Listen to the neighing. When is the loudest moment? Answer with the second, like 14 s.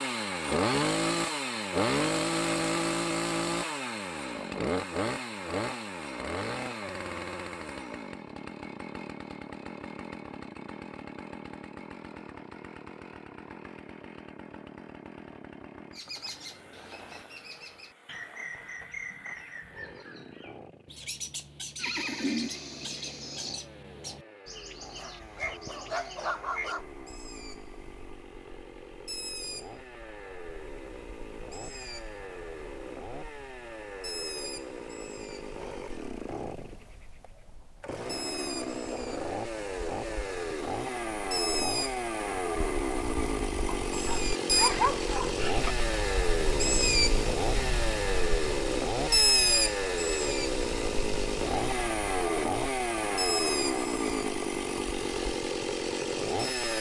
22 s.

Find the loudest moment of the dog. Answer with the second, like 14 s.
45 s.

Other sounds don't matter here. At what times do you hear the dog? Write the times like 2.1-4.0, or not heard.
24.8-26.9, 43.9-45.4.